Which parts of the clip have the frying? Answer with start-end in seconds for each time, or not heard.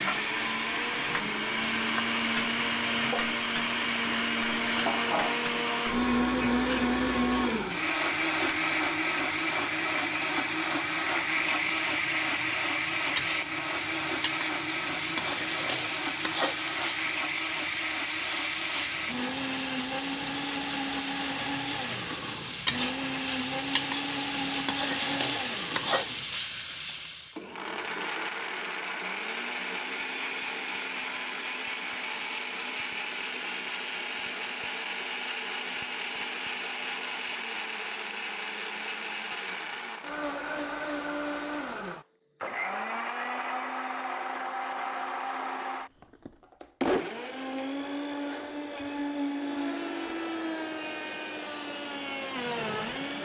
0.0-27.4.